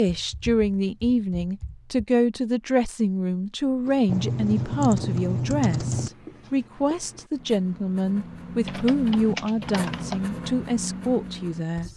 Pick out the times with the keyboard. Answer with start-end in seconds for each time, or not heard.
0.1-2.0, 4.0-6.1, 8.7-10.2.